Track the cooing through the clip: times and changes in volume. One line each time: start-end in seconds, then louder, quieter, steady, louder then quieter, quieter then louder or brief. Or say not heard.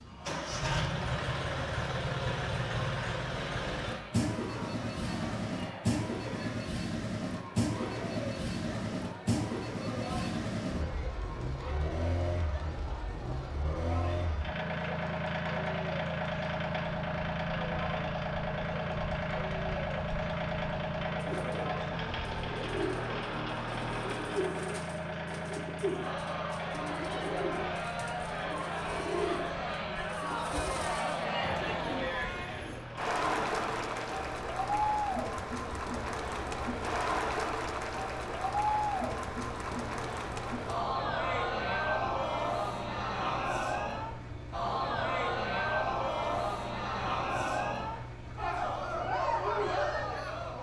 21.0-32.9 steady.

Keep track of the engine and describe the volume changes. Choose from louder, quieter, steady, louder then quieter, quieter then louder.
quieter.